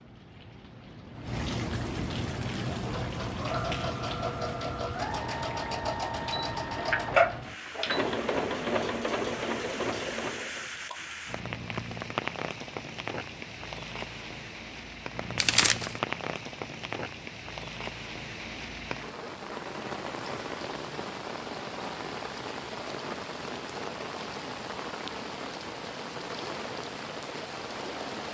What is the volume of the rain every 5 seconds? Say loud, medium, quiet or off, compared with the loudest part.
loud, medium, loud, loud, loud, loud.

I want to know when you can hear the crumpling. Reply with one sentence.
You can hear the crumpling from 15.3 to 15.9 s.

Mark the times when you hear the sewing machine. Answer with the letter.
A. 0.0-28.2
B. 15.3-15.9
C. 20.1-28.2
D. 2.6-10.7
D.